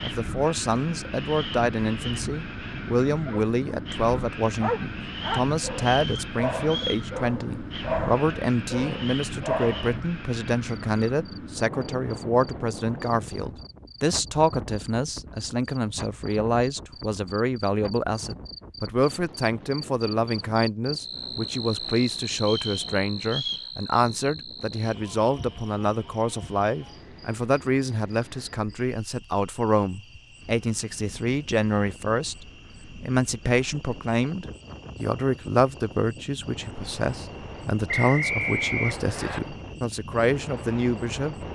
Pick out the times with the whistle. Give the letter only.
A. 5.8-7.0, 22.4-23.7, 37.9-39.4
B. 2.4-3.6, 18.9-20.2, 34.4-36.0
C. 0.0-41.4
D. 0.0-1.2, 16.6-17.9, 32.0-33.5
A.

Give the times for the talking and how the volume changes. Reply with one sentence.
You can hear the talking from 0.0 to 41.4 s, at a steady volume.